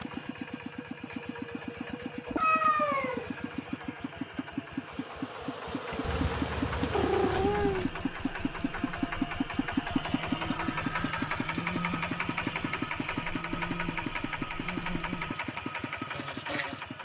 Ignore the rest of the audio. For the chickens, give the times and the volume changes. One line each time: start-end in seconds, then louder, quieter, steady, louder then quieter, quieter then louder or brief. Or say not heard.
not heard.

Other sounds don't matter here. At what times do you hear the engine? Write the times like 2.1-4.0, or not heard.
0.0-17.0.